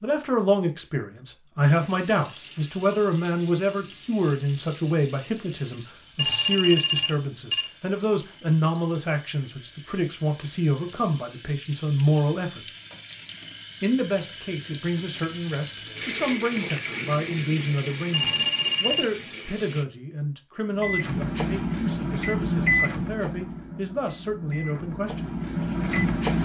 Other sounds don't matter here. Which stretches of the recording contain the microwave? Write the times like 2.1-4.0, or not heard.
20.8-26.3.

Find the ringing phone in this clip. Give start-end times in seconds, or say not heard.
6.2-7.7, 18.1-19.1.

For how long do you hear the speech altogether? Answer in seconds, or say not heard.
24 s.